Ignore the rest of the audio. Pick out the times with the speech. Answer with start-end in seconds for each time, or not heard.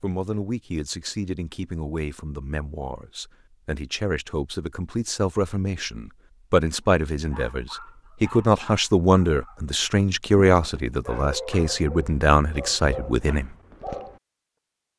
0.0-13.5.